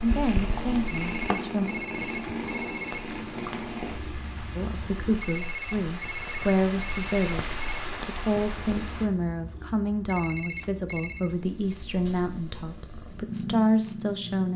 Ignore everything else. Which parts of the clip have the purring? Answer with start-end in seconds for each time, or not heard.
0.0-5.1, 8.7-14.5.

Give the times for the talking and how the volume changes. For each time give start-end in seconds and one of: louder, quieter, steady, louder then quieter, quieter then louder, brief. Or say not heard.
0.0-1.7 brief
4.5-14.5 steady.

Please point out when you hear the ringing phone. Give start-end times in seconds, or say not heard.
0.8-3.1, 5.2-7.9, 10.1-11.3.